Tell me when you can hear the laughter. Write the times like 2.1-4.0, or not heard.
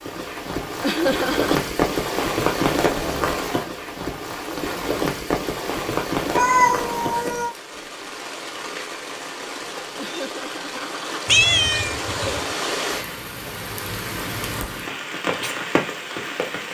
0.8-1.6, 9.9-11.2.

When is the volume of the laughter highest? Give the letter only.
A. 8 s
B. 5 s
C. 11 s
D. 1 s
D.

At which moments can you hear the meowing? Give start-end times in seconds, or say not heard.
2.9-3.4, 6.3-7.5, 11.2-12.4.